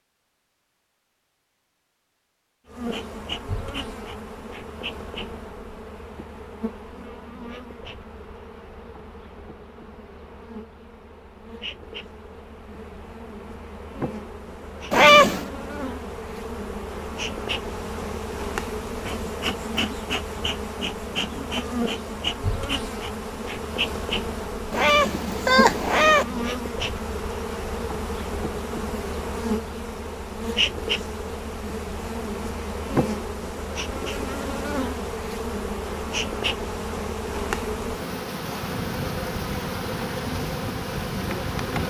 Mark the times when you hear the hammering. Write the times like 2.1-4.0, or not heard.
not heard.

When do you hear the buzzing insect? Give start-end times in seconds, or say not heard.
2.6-41.8.